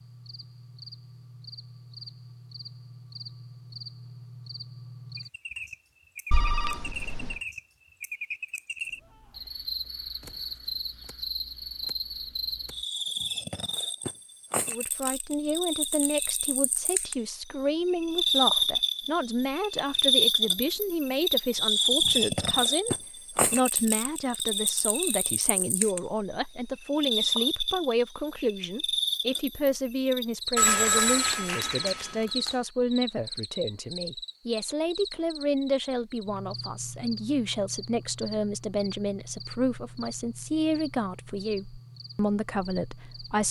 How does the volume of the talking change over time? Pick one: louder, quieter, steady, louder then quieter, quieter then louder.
steady.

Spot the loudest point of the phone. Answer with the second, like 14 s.
31 s.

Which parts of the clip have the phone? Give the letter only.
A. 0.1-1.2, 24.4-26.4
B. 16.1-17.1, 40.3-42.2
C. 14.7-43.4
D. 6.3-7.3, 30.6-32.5
D.